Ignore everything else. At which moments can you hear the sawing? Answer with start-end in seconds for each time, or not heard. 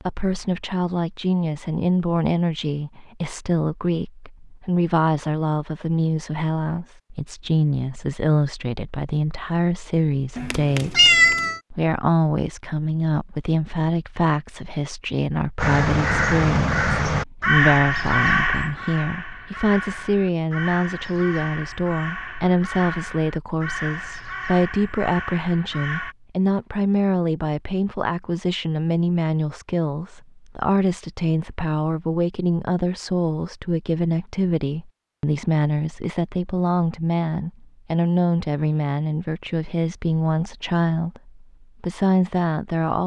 not heard.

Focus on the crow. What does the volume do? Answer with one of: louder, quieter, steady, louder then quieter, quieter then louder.
quieter.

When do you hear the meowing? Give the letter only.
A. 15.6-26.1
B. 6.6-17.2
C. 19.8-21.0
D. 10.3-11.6
D.